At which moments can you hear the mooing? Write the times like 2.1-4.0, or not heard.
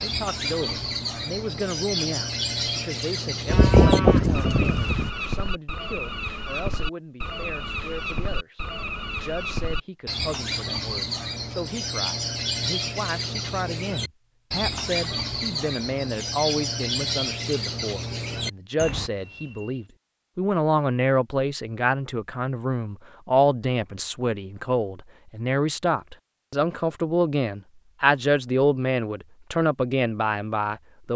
3.5-5.1.